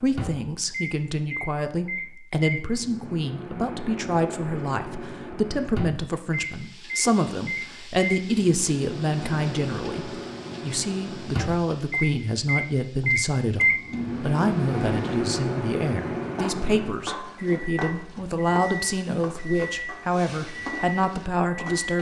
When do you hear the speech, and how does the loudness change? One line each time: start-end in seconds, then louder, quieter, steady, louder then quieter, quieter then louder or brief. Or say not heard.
0.0-21.9 steady.